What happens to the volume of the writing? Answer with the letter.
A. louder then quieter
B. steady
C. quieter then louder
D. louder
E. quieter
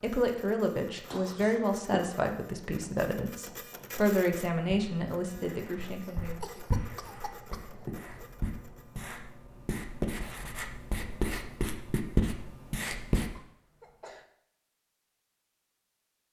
D.